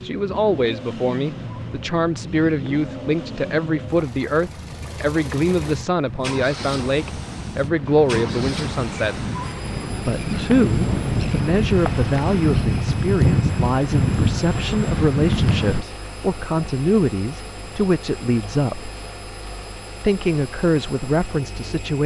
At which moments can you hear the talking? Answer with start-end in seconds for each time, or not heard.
0.0-9.2, 10.1-18.9, 20.0-22.0.